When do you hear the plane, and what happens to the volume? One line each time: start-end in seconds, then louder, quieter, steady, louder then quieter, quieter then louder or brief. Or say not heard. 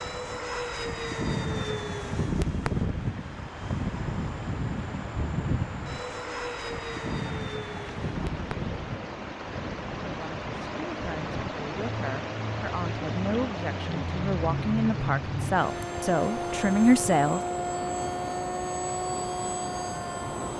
0.0-20.5 quieter then louder.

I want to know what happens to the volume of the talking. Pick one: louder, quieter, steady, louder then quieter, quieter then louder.
louder.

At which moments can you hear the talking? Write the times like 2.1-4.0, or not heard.
10.0-17.4.